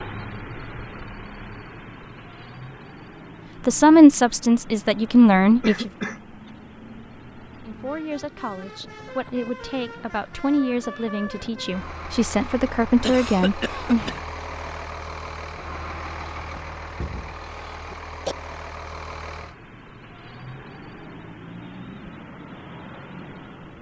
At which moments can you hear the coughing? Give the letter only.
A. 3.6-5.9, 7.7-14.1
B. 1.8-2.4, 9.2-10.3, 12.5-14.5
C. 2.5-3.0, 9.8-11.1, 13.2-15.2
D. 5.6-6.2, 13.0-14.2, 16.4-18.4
D.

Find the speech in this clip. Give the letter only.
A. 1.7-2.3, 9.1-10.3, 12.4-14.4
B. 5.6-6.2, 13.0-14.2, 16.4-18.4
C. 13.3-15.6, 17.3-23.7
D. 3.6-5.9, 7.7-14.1
D.